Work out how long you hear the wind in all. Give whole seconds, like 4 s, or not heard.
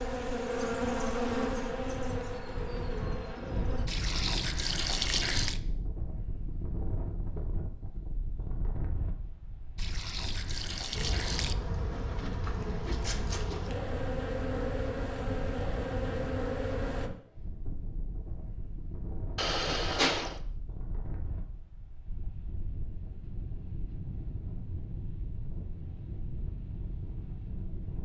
28 s.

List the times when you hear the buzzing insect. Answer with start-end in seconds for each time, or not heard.
0.0-3.9, 10.9-17.1.